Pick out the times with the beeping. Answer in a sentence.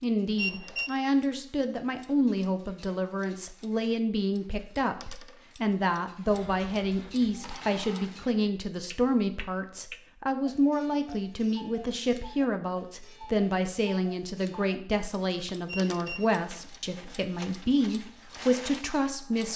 The beeping can be heard from 0.3 to 0.9 s and from 15.7 to 16.3 s.